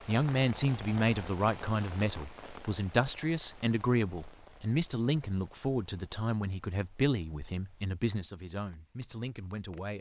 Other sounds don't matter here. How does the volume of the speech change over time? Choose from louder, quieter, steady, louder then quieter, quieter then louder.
quieter.